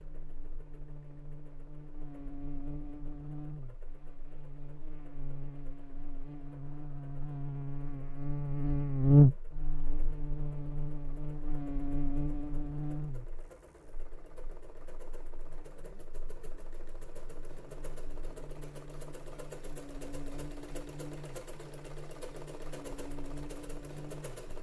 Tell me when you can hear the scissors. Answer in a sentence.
The scissors can't be heard in this clip.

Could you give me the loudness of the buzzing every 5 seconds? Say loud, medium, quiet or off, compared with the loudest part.
quiet, loud, medium, quiet, quiet.